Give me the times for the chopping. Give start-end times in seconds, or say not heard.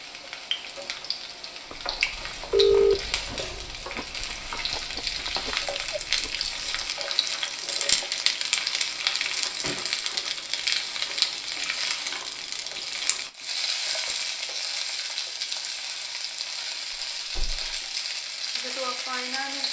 not heard.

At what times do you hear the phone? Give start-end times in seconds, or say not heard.
2.5-3.6.